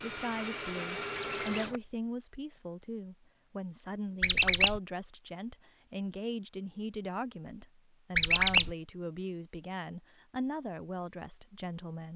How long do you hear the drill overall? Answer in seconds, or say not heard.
2 s.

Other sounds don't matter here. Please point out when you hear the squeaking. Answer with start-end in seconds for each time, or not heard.
1.1-1.6, 4.2-4.8, 8.2-8.7.